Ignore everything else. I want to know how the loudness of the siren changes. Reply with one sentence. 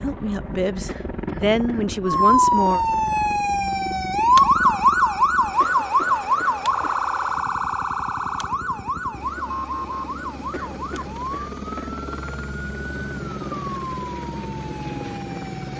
The loudness of the siren goes down.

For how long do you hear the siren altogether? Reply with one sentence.
The siren can be heard for 14 seconds in total.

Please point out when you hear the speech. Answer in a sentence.
You can hear the speech from 0.0 to 2.8 s.